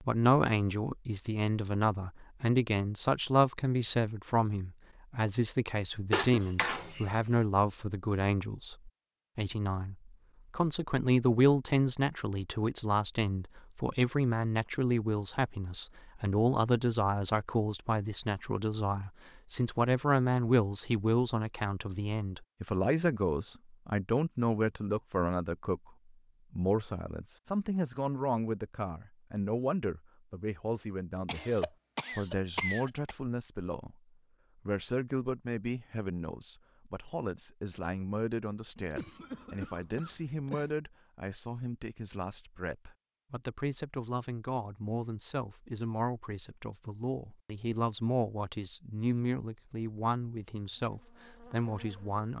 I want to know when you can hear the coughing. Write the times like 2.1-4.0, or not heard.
6.1-7.0, 31.2-33.1, 38.8-40.8.